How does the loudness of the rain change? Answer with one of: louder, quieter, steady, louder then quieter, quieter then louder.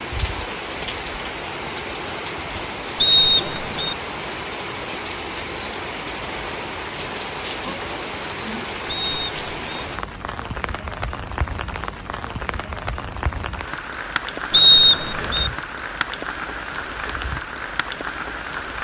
steady.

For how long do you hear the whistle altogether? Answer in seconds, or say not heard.
3 s.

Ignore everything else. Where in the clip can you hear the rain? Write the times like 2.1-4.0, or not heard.
0.0-18.8.